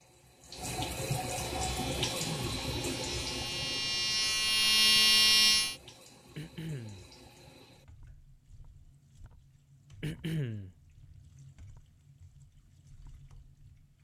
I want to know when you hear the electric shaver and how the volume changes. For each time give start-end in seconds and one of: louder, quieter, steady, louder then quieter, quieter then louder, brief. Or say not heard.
1.5-5.8 louder.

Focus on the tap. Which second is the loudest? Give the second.
2 s.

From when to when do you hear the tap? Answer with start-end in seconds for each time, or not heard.
0.0-13.9.